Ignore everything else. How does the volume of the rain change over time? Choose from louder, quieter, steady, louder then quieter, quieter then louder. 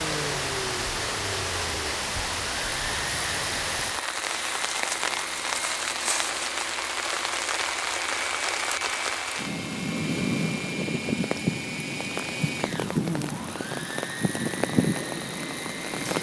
steady.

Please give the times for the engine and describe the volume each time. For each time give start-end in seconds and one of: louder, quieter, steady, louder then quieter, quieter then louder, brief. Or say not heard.
0.0-16.1 steady.